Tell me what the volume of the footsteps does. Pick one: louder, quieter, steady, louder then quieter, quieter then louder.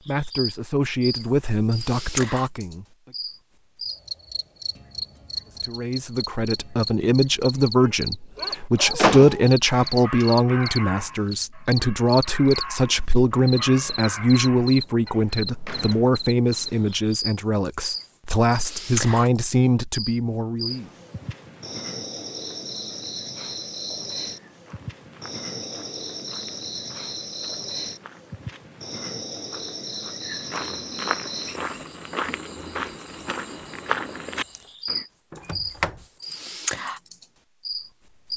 louder.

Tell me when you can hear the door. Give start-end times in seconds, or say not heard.
8.9-10.3, 15.2-17.0, 35.3-36.0.